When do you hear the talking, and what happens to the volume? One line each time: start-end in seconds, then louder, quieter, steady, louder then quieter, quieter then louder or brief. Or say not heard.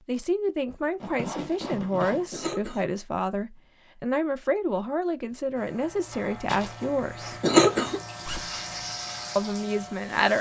0.1-7.3 steady
9.3-10.3 brief.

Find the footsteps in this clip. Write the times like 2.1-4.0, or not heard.
not heard.